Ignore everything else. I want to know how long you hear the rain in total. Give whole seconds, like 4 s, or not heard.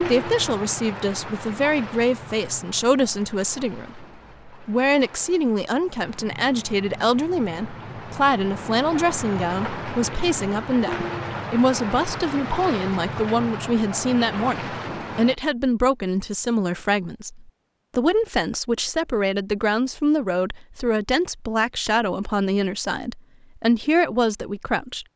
15 s.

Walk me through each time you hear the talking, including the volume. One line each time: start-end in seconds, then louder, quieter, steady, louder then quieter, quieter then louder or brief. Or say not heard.
0.0-25.1 steady.